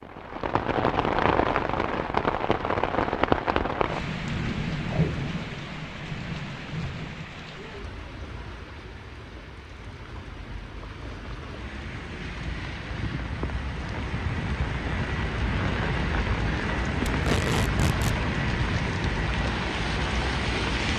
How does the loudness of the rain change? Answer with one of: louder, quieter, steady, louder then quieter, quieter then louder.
quieter then louder.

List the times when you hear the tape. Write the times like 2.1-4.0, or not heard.
4.8-5.3, 17.1-18.1.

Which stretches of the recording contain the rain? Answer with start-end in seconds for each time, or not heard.
0.0-20.9.